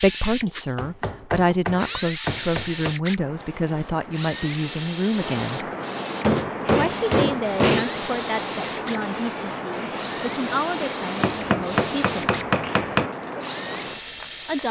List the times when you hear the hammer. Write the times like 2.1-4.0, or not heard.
0.8-3.0, 6.2-7.8, 11.2-13.1.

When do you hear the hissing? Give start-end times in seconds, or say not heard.
3.1-14.6.